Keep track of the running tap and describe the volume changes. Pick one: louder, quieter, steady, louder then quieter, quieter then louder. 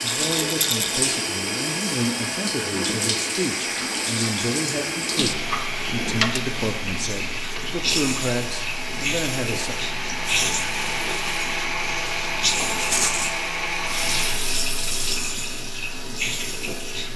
steady.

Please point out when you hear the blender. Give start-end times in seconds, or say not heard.
0.0-14.5.